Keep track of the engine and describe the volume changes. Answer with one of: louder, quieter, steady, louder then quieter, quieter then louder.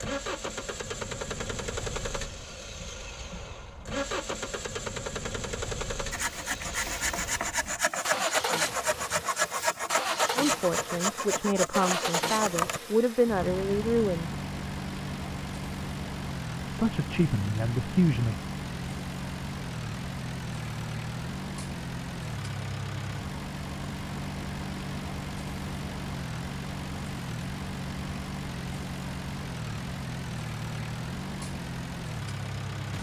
steady.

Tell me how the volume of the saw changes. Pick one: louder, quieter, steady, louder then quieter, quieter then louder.
steady.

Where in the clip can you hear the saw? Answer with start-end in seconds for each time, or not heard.
6.1-12.8.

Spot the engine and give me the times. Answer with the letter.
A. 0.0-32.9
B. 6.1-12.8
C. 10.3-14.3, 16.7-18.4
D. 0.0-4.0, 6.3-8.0
A.